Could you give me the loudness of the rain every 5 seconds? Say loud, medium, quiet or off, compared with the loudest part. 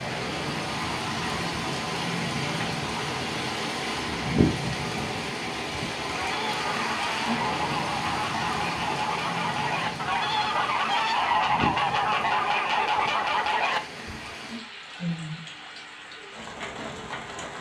loud, loud, medium, medium.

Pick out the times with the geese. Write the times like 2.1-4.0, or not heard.
6.1-14.3.